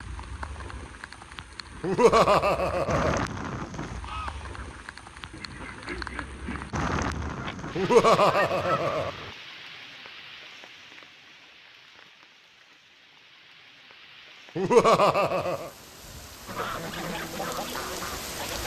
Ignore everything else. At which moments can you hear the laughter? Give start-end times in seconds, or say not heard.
1.8-3.2, 7.8-9.1, 14.6-15.7.